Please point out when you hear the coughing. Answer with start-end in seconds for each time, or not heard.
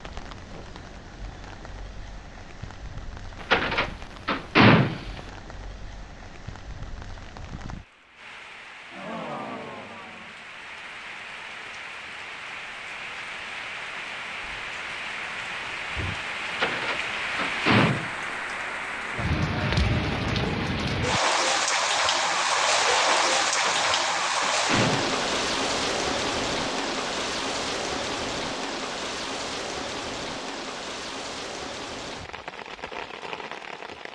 not heard.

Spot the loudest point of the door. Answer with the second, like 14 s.
5 s.